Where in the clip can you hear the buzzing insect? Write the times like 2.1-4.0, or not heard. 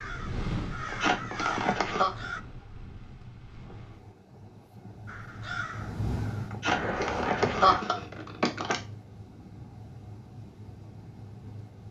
not heard.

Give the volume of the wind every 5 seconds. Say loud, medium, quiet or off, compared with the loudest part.
loud, loud, medium.